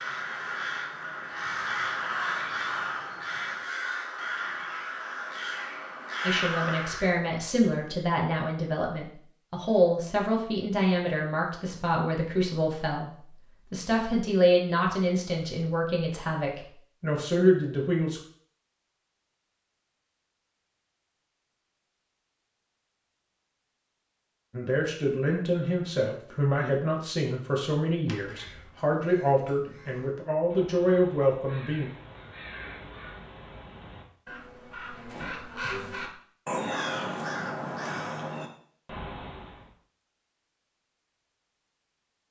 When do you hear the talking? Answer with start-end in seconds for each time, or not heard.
6.2-18.2, 24.5-31.9.